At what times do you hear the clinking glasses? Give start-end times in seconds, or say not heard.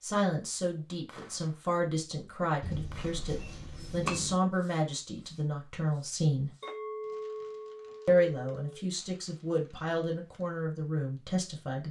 2.6-4.3, 6.6-8.8.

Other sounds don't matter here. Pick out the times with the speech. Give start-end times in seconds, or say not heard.
0.0-6.5, 8.1-11.8.